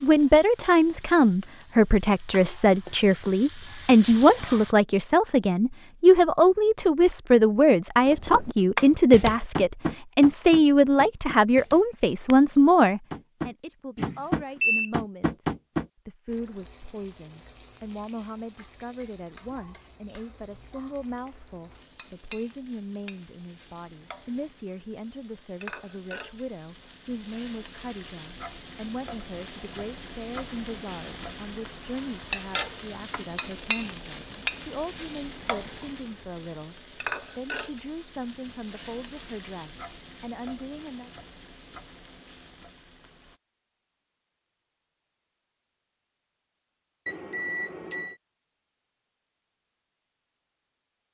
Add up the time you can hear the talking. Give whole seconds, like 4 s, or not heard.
41 s.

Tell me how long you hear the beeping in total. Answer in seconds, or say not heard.
2 s.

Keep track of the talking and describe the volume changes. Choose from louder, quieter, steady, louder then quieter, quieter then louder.
quieter.